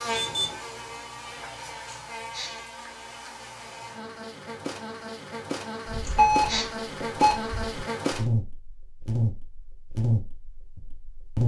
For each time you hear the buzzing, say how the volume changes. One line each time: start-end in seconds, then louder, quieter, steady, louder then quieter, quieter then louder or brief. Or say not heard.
0.0-11.4 louder.